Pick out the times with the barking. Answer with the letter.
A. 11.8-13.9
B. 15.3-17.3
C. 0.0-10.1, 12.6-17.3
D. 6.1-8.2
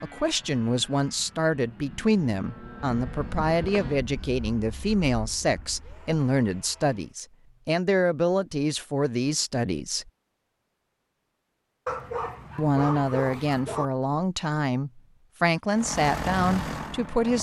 A.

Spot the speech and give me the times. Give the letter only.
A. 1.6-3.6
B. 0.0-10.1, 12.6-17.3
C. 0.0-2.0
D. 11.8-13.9
B.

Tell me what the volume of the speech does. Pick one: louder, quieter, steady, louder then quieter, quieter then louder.
steady.